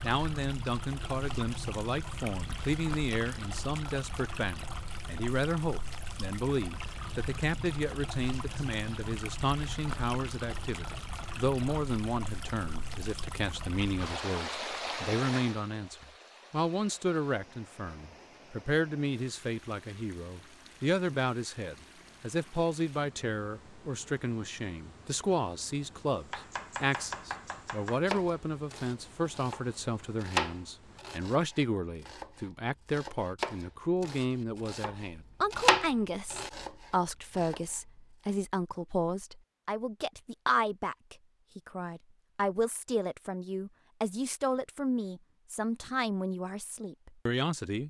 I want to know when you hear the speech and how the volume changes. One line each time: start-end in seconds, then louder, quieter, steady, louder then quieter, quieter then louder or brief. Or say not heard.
0.0-47.8 steady.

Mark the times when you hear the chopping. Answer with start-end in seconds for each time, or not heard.
26.3-37.9.